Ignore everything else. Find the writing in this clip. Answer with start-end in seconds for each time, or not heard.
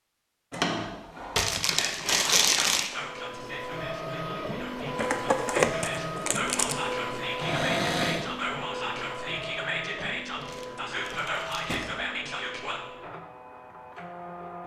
not heard.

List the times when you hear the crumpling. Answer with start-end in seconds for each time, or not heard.
1.4-2.9, 5.0-6.8, 10.4-11.8.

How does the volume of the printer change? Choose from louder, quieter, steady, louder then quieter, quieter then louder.
quieter.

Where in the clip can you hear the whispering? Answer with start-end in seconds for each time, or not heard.
1.6-12.8.